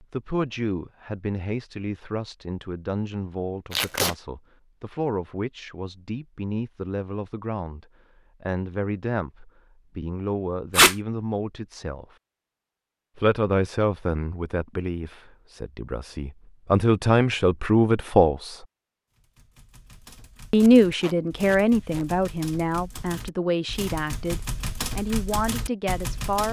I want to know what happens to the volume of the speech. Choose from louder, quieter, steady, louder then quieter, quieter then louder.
louder then quieter.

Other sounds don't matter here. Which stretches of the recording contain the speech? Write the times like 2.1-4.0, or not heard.
0.0-12.1, 13.2-18.6, 20.5-26.4.